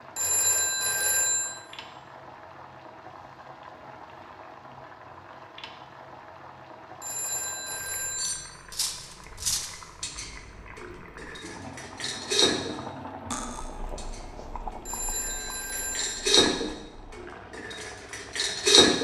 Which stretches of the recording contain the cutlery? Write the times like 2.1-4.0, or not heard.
8.2-18.9.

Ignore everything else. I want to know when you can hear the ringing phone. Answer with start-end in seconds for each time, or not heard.
0.1-1.6, 7.0-8.4, 14.8-16.3.